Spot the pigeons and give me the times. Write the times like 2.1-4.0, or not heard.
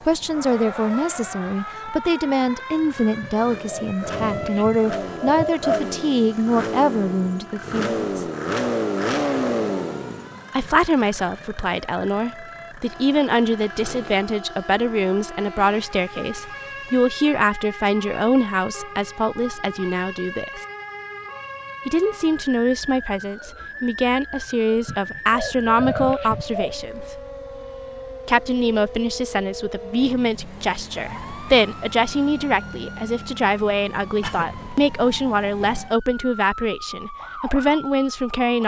3.2-5.8, 24.9-26.8.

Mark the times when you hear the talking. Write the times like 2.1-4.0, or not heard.
0.1-8.2, 10.5-20.6, 21.9-27.1, 28.2-38.6.